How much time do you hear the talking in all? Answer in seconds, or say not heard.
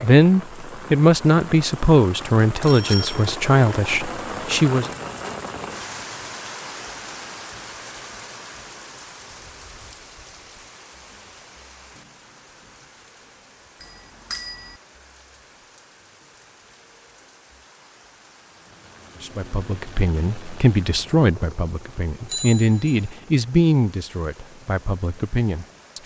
12 s.